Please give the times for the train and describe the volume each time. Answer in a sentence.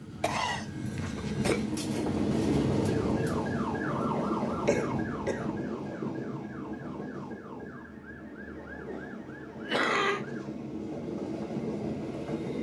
The train can be heard from 0.0 to 12.5 s, getting quieter then louder.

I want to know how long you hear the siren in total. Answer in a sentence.
The siren can be heard for 8 seconds in total.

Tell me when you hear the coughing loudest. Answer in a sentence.
The loudest moment of the coughing is at 10 seconds.